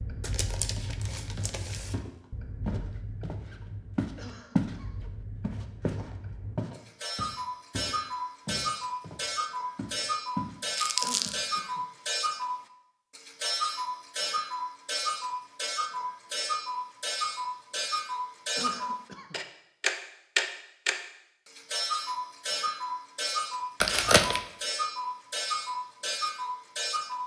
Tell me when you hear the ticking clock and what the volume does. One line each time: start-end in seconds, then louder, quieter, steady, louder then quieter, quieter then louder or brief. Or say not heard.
0.0-27.2 louder.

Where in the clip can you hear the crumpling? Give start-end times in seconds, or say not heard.
0.2-1.9, 10.8-11.3, 23.8-24.4.